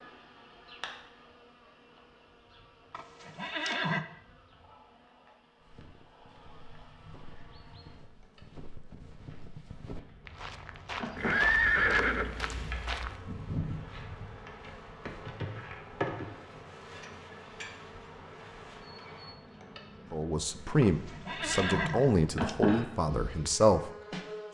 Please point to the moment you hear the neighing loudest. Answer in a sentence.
The loudest moment of the neighing is at 12 seconds.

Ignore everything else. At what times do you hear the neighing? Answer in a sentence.
The neighing can be heard from 2.9 to 4.0 s, from 11.2 to 12.6 s and from 20.8 to 22.3 s.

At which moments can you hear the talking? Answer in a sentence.
You can hear the talking from 20.1 to 23.9 s.